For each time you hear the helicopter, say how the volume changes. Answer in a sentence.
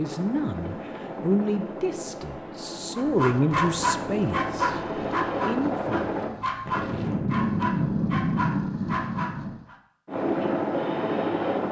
The helicopter can be heard from 0.0 to 6.3 s, getting louder; and briefly from 10.1 to 11.6 s.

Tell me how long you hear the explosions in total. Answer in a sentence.
You can hear the explosions for 3 seconds altogether.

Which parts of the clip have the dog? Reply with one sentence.
The dog can be heard from 3.0 to 9.8 s.